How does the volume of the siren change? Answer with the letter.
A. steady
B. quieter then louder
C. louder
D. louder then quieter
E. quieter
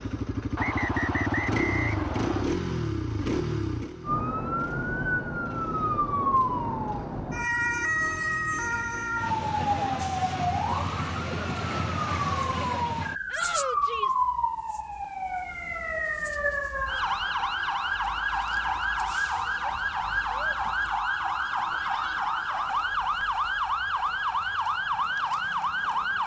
A.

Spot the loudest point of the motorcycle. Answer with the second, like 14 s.
2 s.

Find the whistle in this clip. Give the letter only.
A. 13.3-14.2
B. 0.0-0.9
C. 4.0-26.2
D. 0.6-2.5
D.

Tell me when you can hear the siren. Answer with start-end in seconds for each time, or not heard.
4.0-26.2.